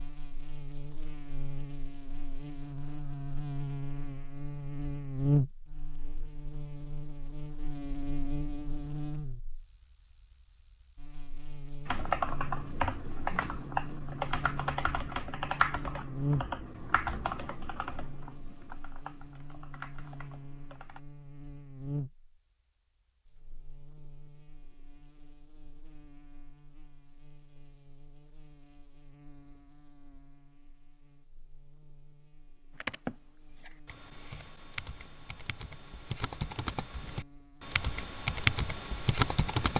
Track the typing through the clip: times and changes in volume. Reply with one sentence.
You can hear the typing from 11.8 to 21.0 s, getting quieter; and from 32.8 to 39.7 s, getting louder.